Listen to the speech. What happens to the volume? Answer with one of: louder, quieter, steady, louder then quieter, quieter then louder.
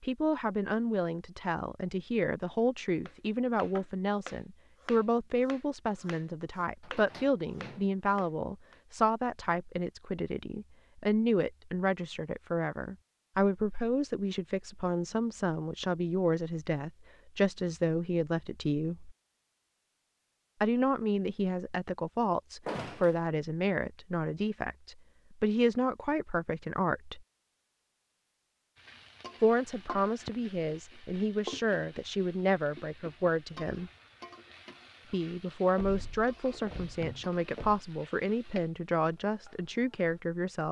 steady.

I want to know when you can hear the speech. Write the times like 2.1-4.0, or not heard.
0.0-19.1, 20.6-27.2, 29.4-33.9, 35.1-40.6.